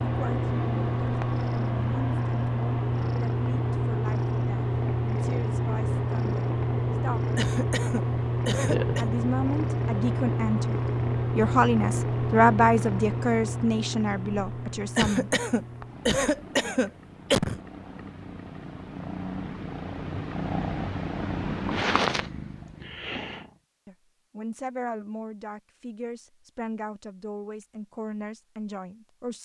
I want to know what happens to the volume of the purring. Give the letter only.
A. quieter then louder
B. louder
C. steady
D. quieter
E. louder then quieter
A.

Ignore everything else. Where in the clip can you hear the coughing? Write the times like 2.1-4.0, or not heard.
7.3-9.1, 14.9-17.6.